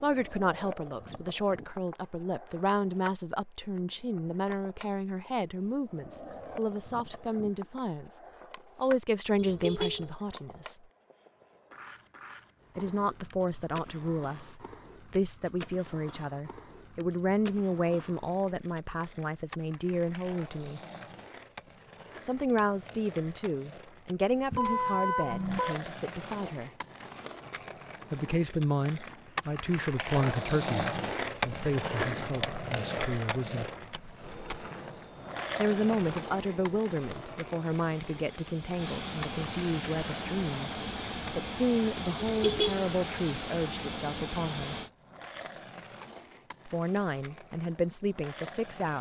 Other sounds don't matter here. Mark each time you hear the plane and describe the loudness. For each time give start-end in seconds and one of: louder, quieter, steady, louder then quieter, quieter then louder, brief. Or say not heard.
34.2-44.9 louder.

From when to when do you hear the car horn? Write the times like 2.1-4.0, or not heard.
9.4-10.1, 24.5-25.8, 42.2-42.9.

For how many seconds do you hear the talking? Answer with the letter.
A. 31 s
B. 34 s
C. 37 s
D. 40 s
D.